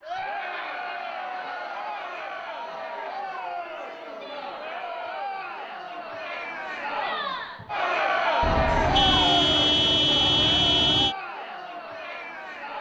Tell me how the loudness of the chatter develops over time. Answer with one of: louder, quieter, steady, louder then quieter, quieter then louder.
louder then quieter.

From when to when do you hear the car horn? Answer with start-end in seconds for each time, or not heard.
8.4-11.2.